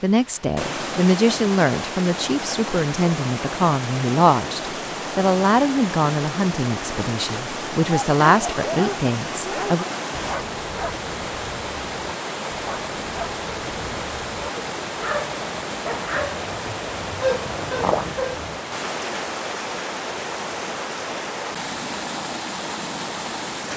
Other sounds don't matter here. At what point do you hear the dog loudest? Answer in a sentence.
The volume of the dog peaks at 18 seconds.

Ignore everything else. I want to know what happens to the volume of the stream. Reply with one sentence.
The loudness of the stream stays about the same.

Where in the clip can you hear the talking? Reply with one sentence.
The talking can be heard from 0.0 to 9.8 s.